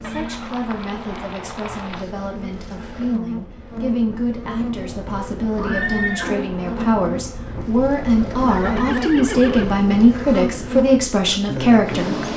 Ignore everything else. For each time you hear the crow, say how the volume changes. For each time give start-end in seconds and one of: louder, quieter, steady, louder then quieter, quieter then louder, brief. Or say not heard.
not heard.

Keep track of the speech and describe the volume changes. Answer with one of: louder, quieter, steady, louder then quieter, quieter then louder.
louder.